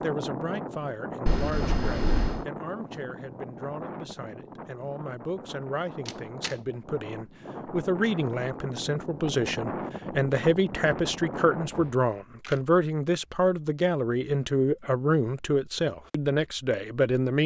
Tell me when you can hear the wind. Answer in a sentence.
You can hear the wind from 0.0 to 11.9 s.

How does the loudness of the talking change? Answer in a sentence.
The loudness of the talking goes up.